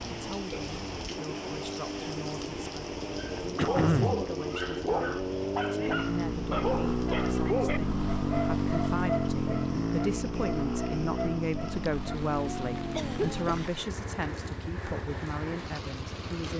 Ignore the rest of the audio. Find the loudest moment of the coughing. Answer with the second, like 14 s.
4 s.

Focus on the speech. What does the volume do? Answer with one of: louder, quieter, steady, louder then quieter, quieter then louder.
louder.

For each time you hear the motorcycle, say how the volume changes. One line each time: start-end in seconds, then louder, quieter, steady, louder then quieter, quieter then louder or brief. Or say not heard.
0.0-16.3 louder then quieter.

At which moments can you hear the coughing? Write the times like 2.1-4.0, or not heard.
3.5-4.2, 12.9-13.7.